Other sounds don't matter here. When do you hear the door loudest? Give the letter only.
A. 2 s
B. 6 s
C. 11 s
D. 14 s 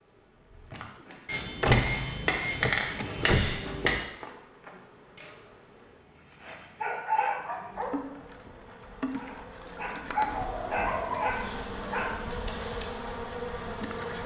A.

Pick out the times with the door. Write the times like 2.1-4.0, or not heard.
1.6-3.6.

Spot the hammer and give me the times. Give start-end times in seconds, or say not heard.
1.2-4.0.